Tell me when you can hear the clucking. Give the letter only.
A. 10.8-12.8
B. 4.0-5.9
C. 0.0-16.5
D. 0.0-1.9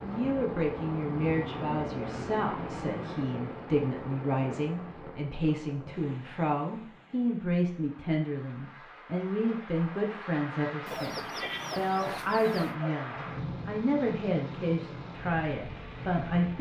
A.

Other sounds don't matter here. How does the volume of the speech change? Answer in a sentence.
The loudness of the speech stays about the same.